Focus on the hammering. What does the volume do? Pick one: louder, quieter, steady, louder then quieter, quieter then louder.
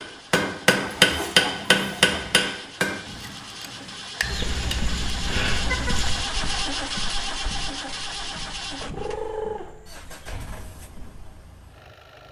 quieter.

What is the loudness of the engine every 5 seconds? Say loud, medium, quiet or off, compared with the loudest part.
medium, loud, quiet.